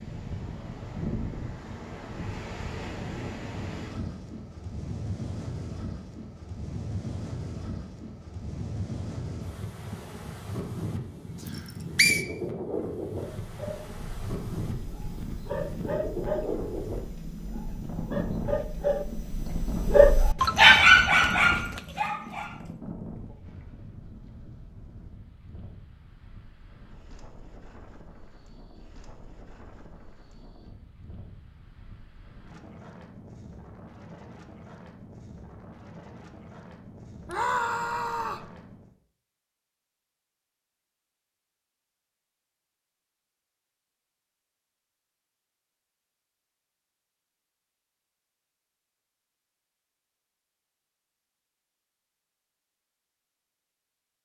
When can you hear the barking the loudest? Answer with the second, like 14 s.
21 s.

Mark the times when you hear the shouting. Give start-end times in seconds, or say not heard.
37.2-38.5.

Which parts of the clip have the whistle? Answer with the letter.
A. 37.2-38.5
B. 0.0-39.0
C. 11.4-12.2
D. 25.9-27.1
C.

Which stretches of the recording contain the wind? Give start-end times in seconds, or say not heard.
0.0-39.0.